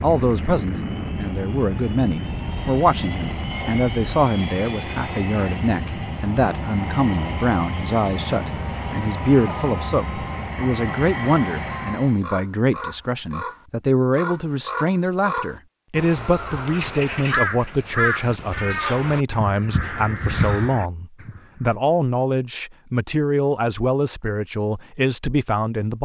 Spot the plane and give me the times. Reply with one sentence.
The plane can be heard from 0.0 to 12.2 s.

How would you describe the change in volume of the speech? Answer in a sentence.
The volume of the speech stays about the same.